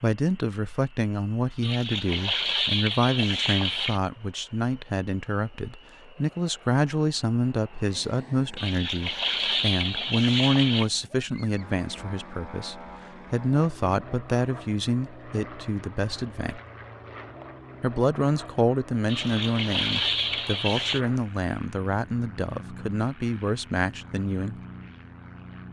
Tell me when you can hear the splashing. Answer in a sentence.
You can hear the splashing from 1.6 to 4.0 s, from 8.6 to 10.9 s and from 19.1 to 21.0 s.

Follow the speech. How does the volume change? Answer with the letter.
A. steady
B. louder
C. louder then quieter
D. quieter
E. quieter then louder
A.